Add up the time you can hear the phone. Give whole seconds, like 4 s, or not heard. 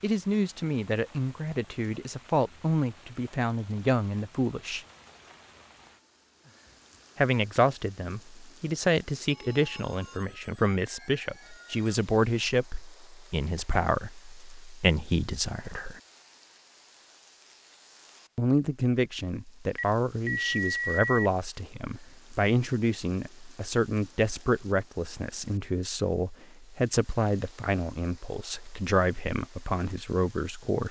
4 s.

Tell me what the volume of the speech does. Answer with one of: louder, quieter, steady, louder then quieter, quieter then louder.
steady.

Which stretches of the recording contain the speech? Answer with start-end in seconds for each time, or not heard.
0.0-4.8, 7.2-16.0, 18.4-30.8.